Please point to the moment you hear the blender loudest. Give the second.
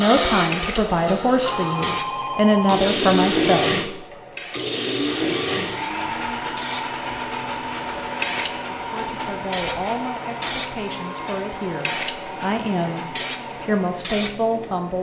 3 s.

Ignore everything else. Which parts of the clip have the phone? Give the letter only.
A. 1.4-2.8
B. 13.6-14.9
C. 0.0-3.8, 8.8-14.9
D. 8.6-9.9
A.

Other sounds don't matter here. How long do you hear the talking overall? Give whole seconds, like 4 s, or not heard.
10 s.